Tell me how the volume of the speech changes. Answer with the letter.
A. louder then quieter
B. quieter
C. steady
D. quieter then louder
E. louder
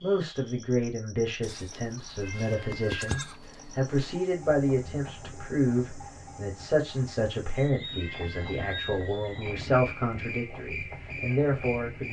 C.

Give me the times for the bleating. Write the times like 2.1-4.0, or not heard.
1.4-4.2.